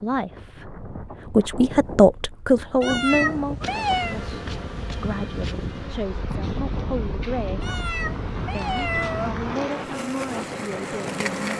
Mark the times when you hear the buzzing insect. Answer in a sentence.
You can hear the buzzing insect from 3.6 to 11.5 s.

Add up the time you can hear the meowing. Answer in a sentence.
The meowing can be heard for 3 seconds in total.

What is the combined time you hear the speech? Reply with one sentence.
The speech can be heard for 11 seconds in total.